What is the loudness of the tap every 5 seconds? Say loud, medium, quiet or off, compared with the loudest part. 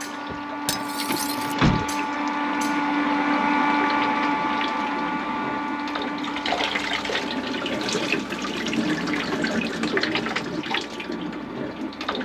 medium, loud, loud.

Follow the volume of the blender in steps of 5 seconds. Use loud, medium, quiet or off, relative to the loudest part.
loud, medium, quiet.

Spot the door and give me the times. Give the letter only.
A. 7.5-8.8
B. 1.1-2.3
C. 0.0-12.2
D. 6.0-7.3
B.